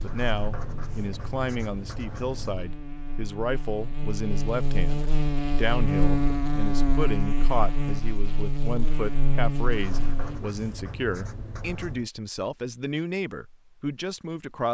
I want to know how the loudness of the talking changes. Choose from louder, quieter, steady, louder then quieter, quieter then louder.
steady.